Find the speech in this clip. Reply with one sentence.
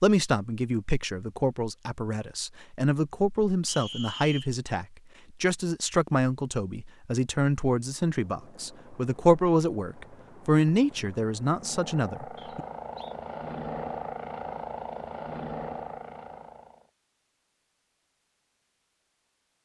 The speech can be heard from 0.0 to 12.6 s.